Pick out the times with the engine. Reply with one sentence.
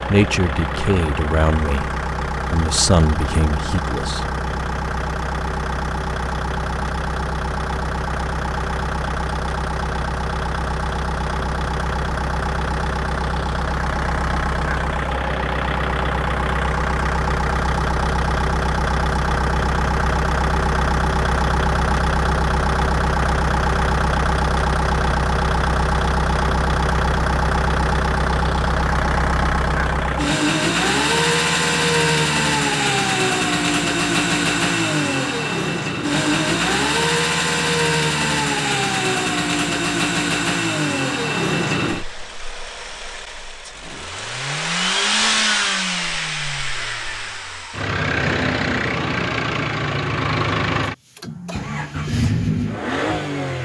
The engine can be heard from 0.0 to 53.6 s.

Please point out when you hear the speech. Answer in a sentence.
You can hear the speech from 0.1 to 4.2 s.